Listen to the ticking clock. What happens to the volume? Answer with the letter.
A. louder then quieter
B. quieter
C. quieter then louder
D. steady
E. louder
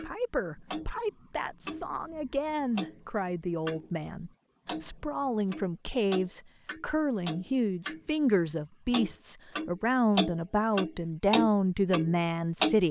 E.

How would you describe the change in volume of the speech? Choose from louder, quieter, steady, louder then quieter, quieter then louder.
louder.